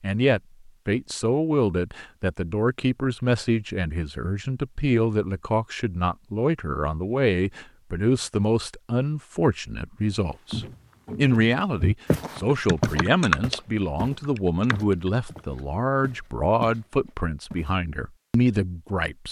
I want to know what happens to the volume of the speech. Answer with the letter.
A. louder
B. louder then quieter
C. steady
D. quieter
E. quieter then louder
C.